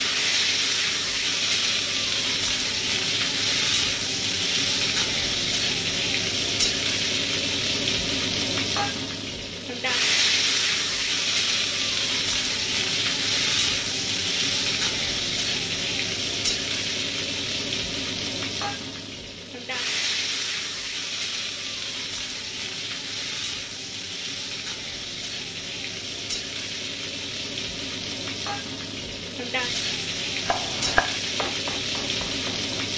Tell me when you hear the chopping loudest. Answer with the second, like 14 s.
31 s.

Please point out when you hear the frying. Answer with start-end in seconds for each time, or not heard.
0.0-32.9.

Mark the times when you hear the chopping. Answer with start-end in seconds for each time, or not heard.
30.4-32.8.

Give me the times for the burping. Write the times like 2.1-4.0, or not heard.
not heard.